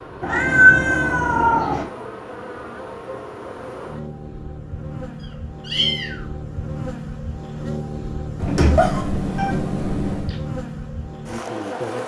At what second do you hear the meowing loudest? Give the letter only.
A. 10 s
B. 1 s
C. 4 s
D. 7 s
B.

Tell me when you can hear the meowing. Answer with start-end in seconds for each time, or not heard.
0.2-1.9, 5.7-6.2, 8.3-10.3.